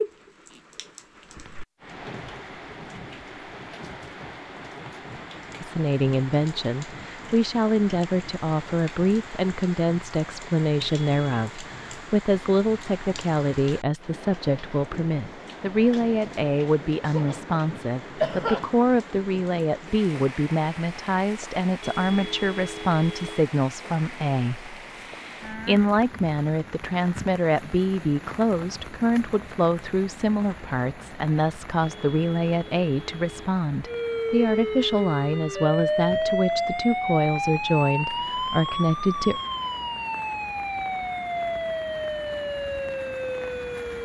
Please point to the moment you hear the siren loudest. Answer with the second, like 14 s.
36 s.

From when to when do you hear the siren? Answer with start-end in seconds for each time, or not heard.
33.9-44.0.